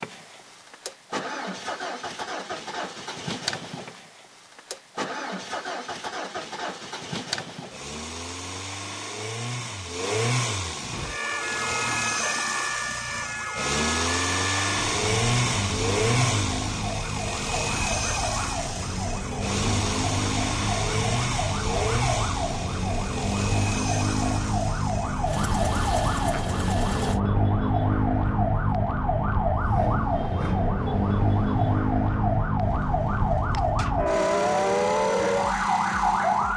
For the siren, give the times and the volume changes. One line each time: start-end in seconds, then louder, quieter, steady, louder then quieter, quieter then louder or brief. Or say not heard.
10.9-36.5 louder.